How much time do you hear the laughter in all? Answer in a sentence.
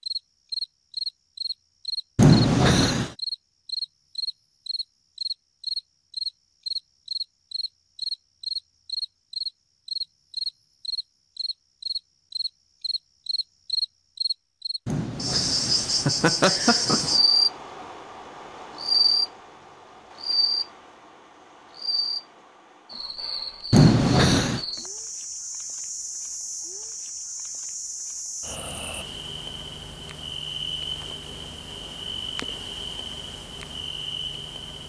The laughter can be heard for 4 seconds in total.